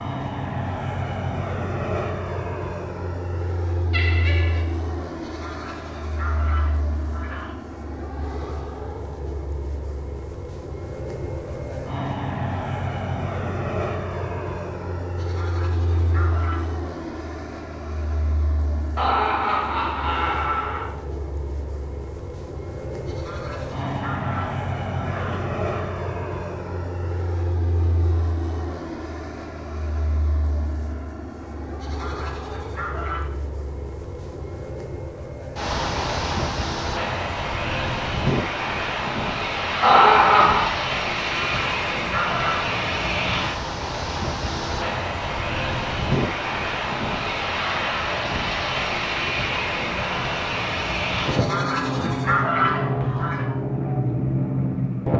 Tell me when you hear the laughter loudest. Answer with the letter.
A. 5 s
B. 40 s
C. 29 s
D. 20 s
B.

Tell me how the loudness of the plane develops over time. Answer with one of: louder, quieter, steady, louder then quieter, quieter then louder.
louder.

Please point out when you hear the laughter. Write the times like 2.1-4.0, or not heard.
3.9-4.7, 18.9-20.9, 39.8-40.6.